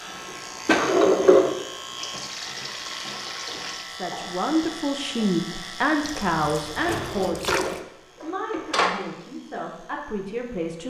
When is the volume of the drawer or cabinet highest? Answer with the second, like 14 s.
1 s.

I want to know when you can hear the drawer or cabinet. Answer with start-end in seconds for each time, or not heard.
0.7-1.6, 7.0-9.0.